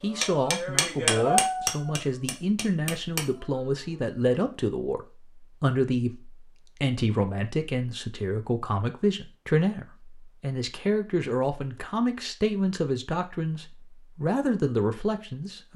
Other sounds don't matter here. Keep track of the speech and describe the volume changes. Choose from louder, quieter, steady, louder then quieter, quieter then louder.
steady.